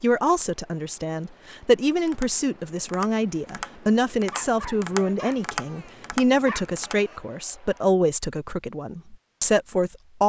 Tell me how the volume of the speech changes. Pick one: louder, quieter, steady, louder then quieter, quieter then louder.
steady.